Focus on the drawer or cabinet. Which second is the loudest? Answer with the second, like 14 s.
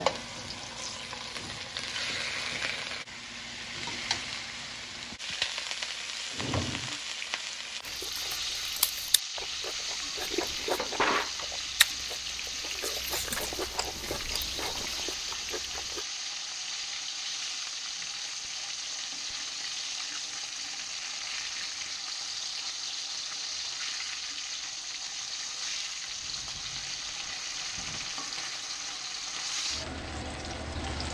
11 s.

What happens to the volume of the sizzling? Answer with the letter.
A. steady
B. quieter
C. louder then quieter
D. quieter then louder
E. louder
A.